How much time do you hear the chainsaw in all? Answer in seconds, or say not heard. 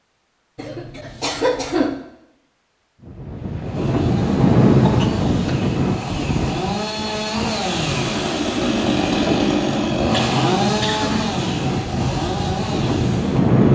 10 s.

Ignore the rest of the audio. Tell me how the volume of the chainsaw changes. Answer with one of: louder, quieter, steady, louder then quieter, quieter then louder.
louder then quieter.